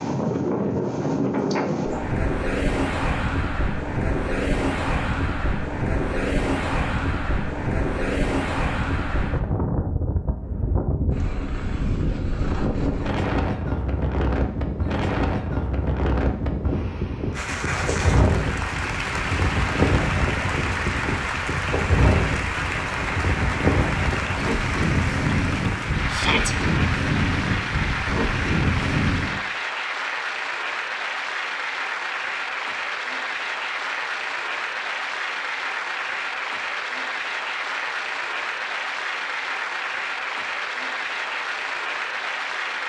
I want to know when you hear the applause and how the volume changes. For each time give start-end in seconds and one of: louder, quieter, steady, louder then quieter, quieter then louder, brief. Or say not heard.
17.3-42.8 steady.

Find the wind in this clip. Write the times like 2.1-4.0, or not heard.
0.0-29.4.